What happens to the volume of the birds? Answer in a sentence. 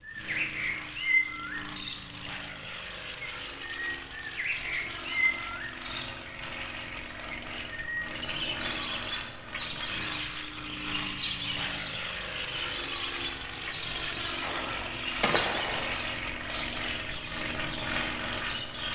The volume of the birds goes down.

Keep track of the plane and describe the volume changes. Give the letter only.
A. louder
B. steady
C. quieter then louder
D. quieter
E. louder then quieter
A.